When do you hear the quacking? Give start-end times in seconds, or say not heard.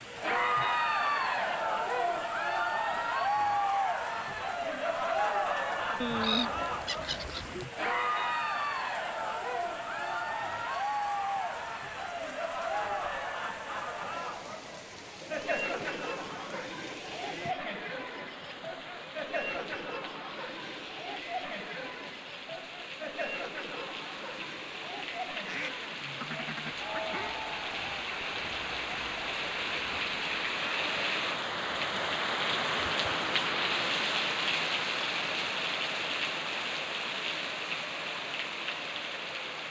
6.0-7.7, 25.4-27.4.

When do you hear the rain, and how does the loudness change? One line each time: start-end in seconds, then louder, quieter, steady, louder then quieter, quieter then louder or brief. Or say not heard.
0.0-39.6 louder.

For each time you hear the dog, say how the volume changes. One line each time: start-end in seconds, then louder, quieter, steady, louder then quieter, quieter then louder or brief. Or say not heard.
not heard.